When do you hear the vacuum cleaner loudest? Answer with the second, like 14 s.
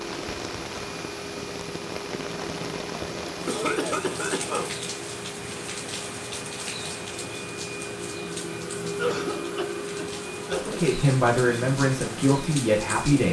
9 s.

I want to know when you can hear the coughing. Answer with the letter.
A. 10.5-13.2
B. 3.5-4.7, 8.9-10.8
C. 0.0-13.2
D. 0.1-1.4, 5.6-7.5
B.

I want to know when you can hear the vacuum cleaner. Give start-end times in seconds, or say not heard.
0.0-13.2.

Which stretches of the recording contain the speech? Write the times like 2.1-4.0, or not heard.
10.5-13.2.